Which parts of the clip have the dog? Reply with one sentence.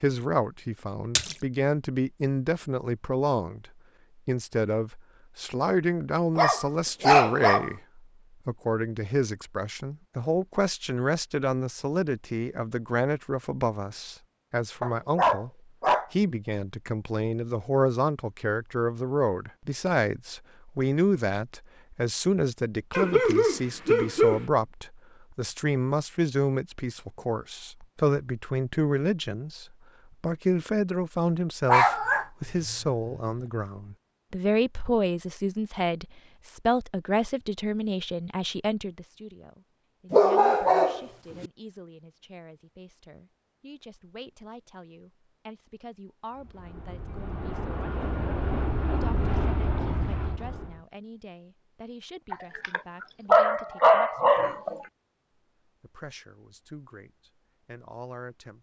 You can hear the dog from 6.3 to 7.7 s, from 14.8 to 16.1 s, from 22.9 to 24.4 s, from 31.6 to 32.2 s, from 40.1 to 41.5 s and from 52.3 to 54.8 s.